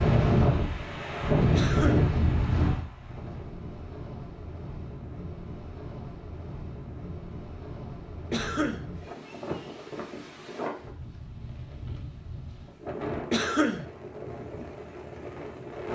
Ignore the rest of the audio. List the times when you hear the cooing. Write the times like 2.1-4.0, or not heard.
not heard.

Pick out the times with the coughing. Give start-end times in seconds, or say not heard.
1.5-2.1, 8.3-8.8, 13.3-13.8.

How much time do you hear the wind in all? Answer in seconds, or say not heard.
16 s.